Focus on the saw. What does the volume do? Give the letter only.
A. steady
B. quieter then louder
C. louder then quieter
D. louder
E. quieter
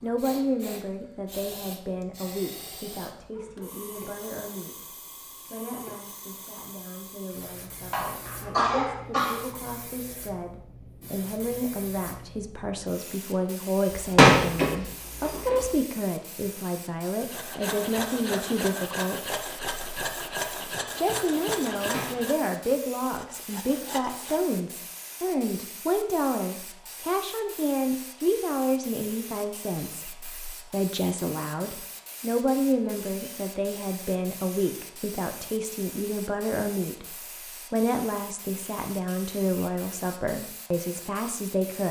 E.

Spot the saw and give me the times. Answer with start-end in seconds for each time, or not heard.
17.1-24.4.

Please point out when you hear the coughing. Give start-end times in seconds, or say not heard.
7.9-9.4.